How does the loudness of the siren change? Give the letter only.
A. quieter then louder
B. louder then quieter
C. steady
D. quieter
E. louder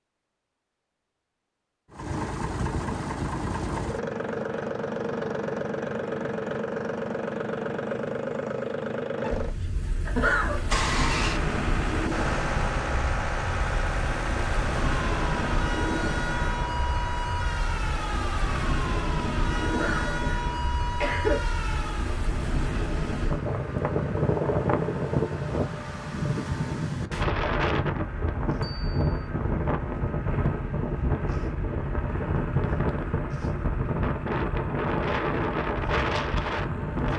C.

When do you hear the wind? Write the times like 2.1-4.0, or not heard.
9.3-37.1.